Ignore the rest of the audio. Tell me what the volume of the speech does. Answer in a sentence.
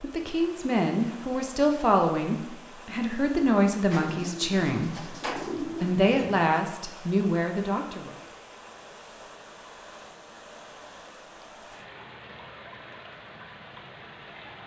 The loudness of the speech stays about the same.